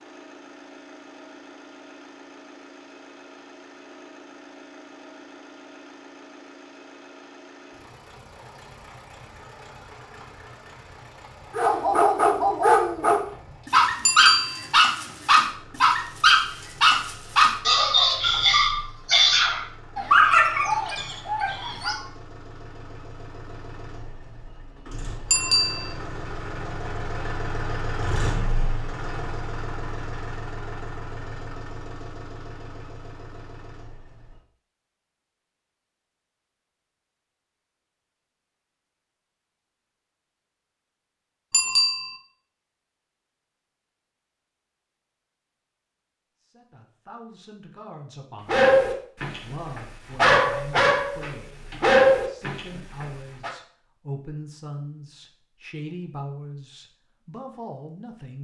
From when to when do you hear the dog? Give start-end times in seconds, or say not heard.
11.5-22.1, 48.5-53.5.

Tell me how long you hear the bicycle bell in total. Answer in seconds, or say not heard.
2 s.